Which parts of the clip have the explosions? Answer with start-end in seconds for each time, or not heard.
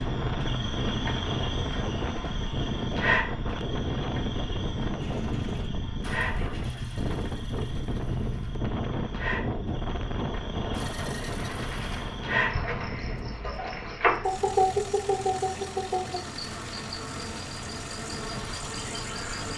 12.5-13.6.